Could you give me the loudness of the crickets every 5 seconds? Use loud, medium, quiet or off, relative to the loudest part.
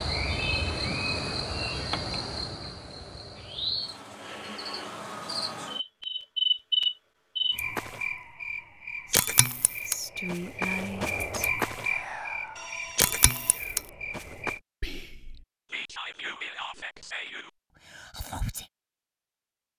loud, loud, loud, off.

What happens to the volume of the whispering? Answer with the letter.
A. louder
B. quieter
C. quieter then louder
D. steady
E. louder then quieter
C.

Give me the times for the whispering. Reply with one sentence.
The whispering can be heard from 9.1 to 18.7 s.